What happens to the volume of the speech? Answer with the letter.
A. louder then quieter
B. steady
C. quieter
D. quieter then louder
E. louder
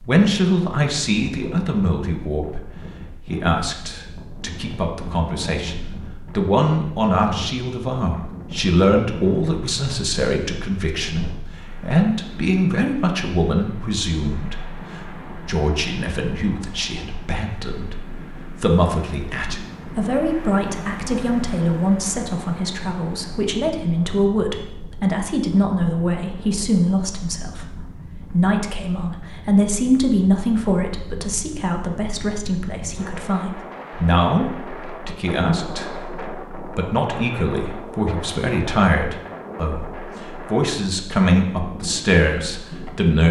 B.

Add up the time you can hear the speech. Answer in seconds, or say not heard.
43 s.